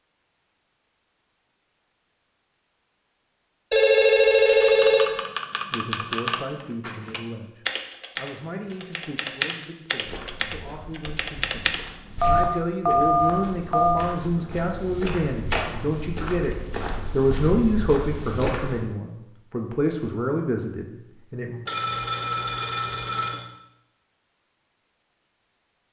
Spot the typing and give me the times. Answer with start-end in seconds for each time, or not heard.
4.6-12.6.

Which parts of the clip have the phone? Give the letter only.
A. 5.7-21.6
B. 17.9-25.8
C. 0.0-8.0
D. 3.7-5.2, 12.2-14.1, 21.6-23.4
D.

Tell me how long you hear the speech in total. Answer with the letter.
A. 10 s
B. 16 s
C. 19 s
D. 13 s
B.